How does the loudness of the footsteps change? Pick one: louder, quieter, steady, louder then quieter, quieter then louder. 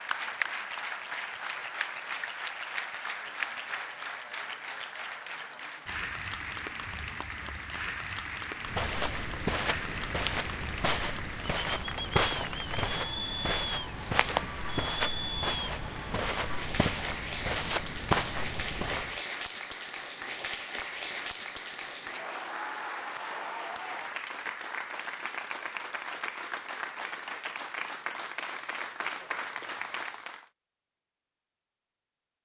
steady.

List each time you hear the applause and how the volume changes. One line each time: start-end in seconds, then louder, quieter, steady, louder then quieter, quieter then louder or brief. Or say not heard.
0.0-30.5 steady.